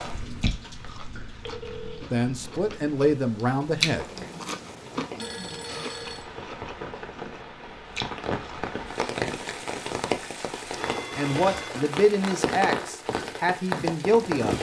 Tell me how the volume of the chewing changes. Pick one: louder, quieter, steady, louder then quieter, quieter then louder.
louder then quieter.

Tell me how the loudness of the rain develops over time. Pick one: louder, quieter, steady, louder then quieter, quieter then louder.
louder.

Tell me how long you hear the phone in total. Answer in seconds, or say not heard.
3 s.